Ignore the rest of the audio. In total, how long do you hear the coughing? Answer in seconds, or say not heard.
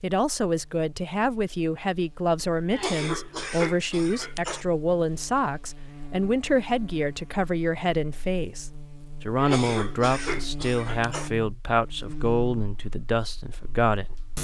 4 s.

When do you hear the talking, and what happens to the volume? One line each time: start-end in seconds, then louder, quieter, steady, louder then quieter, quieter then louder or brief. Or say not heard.
0.0-14.2 steady.